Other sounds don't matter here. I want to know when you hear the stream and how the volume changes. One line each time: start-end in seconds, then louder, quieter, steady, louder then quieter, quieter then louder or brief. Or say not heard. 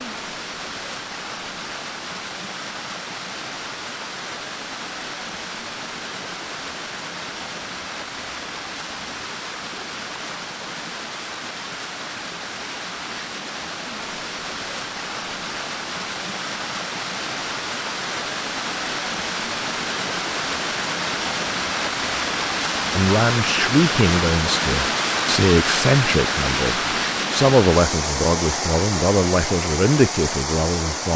0.0-31.1 louder.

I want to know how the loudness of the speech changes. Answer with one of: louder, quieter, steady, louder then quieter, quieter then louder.
steady.